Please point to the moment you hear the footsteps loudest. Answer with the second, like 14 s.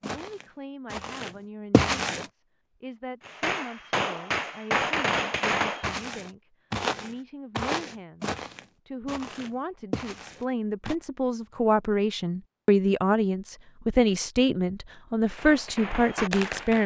2 s.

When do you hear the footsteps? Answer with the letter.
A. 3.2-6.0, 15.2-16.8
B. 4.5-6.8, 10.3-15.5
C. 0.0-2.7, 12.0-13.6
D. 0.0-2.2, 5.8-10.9
D.